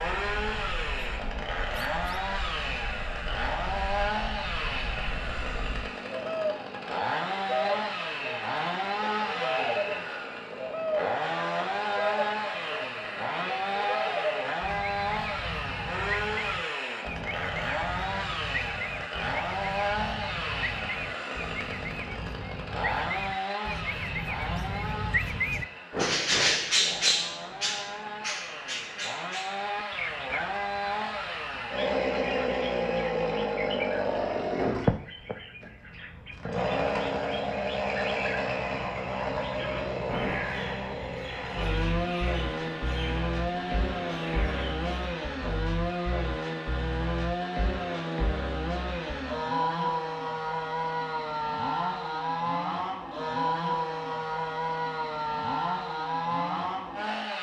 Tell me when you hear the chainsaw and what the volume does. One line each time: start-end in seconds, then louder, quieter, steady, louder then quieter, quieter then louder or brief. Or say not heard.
0.0-57.3 steady.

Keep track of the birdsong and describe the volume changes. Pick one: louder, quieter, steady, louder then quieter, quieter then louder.
louder then quieter.